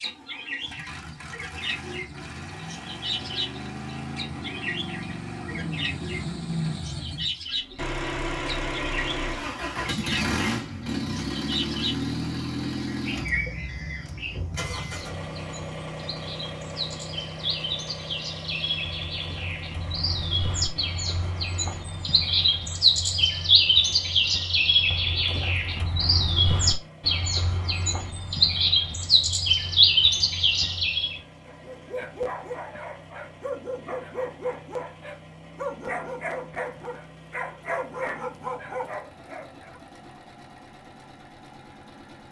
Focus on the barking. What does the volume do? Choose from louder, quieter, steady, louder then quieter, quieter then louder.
steady.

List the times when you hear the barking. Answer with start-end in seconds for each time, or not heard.
31.4-39.8.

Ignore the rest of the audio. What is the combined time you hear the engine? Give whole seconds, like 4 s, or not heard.
42 s.